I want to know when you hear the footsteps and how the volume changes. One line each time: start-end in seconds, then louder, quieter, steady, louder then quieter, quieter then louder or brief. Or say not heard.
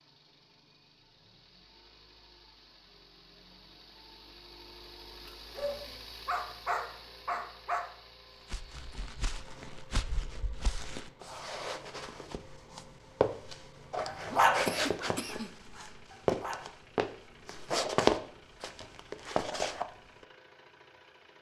8.5-20.2 louder.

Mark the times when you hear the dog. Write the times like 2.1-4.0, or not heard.
5.2-7.8, 14.1-16.6.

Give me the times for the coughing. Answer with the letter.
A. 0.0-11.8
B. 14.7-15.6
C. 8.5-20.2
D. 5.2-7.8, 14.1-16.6
B.